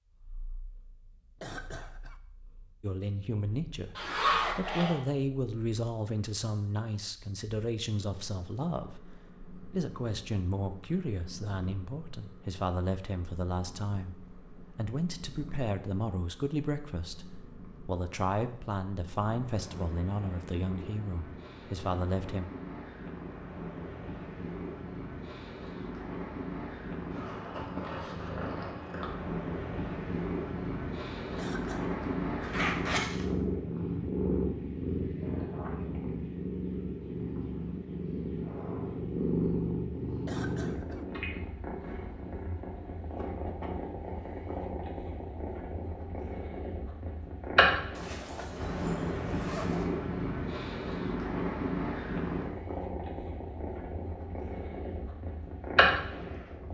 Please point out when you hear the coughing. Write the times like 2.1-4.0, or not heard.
1.4-2.2, 31.4-32.1, 40.2-41.0.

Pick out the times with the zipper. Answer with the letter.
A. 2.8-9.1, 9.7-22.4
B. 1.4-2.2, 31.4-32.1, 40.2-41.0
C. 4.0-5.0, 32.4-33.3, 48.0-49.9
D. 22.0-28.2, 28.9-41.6
C.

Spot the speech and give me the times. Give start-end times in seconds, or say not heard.
2.8-9.1, 9.7-22.4.